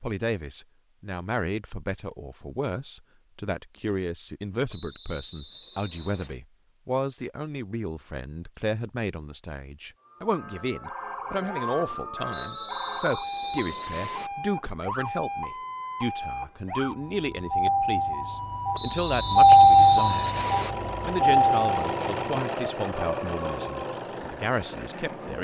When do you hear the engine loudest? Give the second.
22 s.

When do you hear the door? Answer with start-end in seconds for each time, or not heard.
not heard.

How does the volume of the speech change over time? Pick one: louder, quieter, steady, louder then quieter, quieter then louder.
steady.